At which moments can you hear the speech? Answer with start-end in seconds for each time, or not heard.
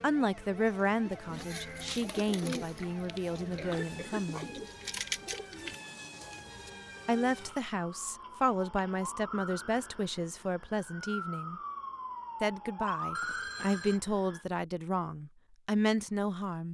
0.0-4.5, 7.0-11.6, 12.4-16.6.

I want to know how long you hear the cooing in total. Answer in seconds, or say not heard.
6 s.